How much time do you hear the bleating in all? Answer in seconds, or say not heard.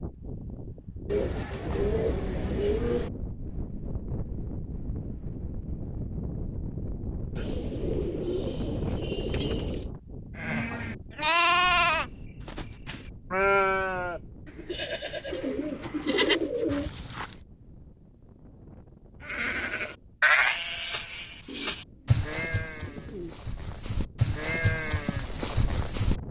14 s.